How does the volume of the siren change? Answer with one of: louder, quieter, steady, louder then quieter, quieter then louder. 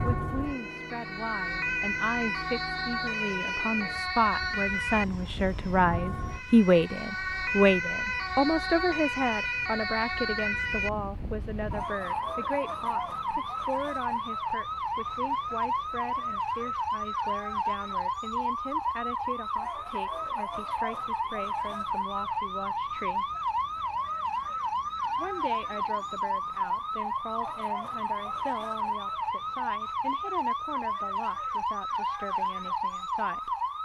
steady.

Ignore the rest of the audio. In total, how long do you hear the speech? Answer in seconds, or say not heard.
32 s.